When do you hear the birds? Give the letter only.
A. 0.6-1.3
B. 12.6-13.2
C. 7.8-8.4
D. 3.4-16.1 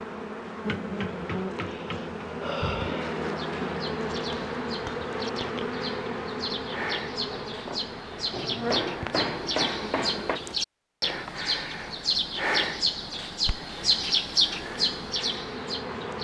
D.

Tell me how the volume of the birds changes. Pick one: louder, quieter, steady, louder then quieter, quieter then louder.
louder.